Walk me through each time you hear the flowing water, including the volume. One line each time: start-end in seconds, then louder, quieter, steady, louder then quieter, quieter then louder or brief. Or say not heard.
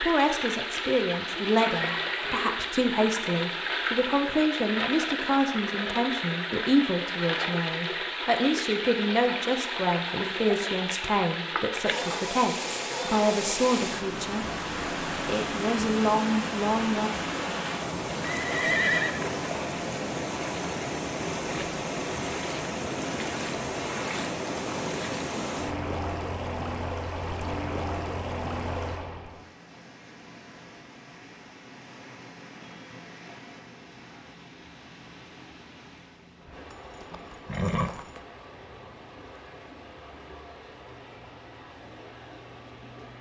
0.0-43.1 quieter.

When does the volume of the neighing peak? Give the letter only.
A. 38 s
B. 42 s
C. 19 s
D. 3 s
C.